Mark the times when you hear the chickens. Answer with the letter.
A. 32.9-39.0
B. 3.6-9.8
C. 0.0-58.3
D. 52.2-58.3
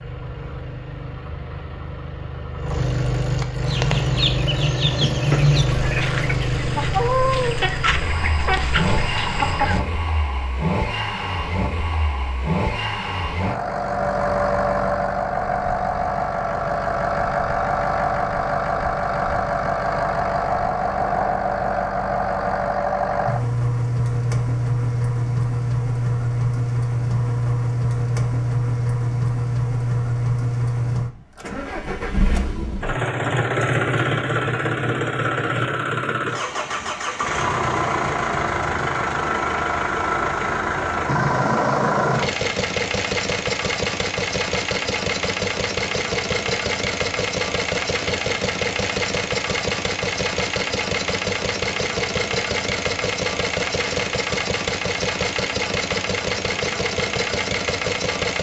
B.